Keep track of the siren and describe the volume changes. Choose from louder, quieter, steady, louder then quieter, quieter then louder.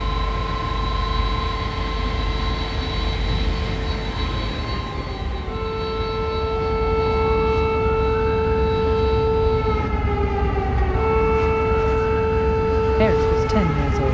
louder.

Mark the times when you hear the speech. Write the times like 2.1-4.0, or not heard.
13.0-14.1.